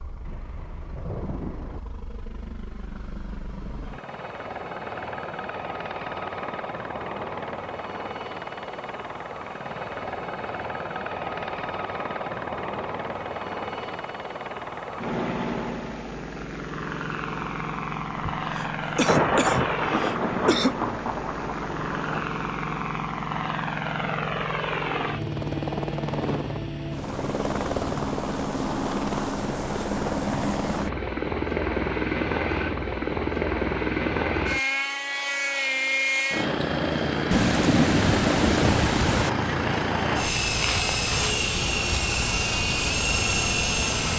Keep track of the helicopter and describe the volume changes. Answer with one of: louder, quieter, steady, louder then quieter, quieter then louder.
louder.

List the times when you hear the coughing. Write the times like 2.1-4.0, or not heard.
18.4-20.8.